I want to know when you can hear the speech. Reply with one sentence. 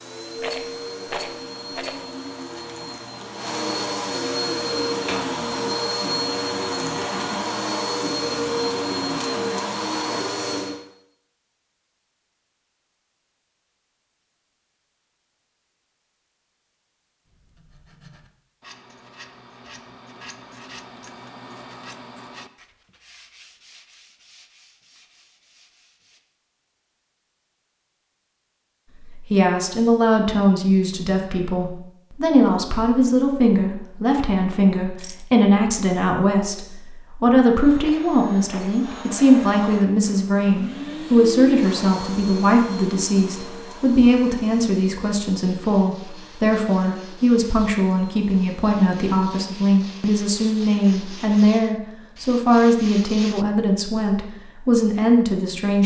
The speech can be heard from 29.1 to 55.8 s.